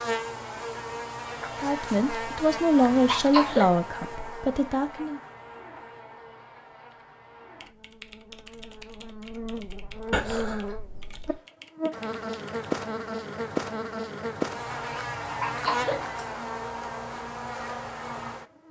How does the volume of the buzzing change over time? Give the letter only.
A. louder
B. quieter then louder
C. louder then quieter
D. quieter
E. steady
B.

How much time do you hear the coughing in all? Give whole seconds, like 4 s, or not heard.
2 s.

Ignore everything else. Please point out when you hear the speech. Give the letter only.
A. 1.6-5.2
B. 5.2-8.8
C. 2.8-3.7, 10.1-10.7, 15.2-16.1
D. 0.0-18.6
A.